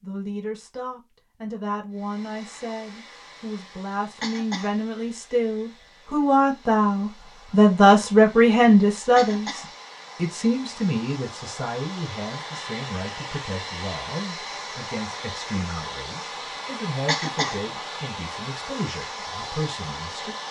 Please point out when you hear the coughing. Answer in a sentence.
The coughing can be heard from 4.2 to 4.8 s, from 9.2 to 9.7 s and from 17.1 to 17.6 s.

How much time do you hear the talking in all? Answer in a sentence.
You can hear the talking for 20 seconds altogether.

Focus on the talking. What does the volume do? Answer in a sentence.
The volume of the talking goes up, then down.